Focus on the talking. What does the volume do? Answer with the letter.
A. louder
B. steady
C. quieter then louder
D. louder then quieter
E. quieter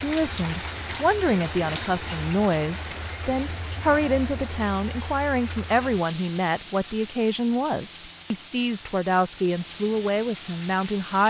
B.